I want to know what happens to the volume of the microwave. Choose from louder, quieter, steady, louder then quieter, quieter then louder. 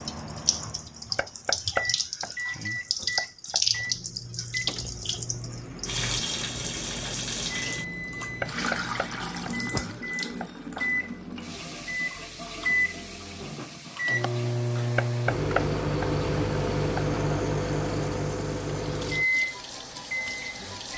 louder.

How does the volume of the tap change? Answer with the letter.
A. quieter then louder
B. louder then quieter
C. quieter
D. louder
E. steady
C.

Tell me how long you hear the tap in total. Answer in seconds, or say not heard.
21 s.